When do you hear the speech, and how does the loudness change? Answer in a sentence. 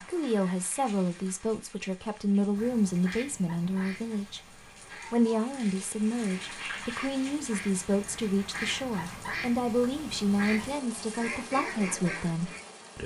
You can hear the speech from 0.0 to 13.0 s, at a steady volume.